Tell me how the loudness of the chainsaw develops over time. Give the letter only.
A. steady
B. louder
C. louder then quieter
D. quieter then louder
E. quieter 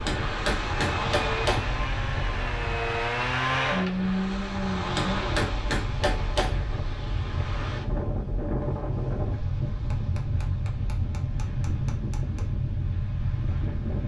C.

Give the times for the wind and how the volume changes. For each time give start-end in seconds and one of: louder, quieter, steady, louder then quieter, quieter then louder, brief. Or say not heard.
0.0-14.0 steady.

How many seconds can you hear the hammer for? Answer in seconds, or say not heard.
6 s.